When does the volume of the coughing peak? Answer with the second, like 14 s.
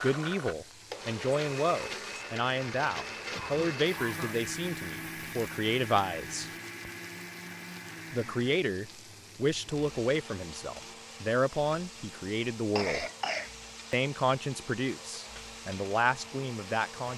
13 s.